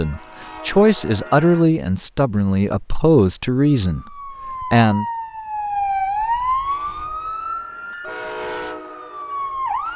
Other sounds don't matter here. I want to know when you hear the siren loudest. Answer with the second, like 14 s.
6 s.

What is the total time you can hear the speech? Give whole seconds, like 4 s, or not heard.
5 s.